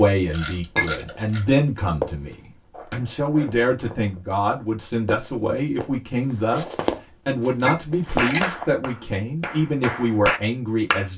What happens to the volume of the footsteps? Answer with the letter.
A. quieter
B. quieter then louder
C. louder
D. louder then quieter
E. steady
C.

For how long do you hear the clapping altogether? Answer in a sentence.
You can hear the clapping for 3 seconds altogether.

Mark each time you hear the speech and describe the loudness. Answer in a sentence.
The speech can be heard from 0.0 to 11.1 s, at a steady volume.